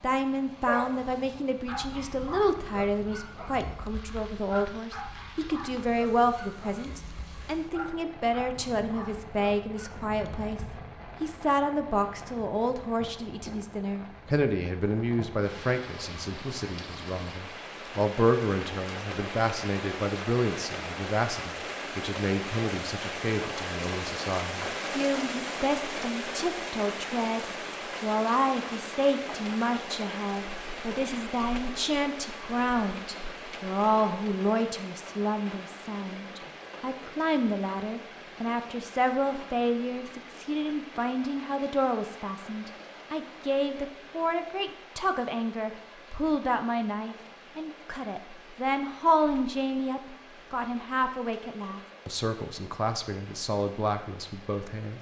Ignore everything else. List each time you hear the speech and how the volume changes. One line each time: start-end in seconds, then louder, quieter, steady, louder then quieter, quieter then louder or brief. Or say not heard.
0.0-54.9 steady.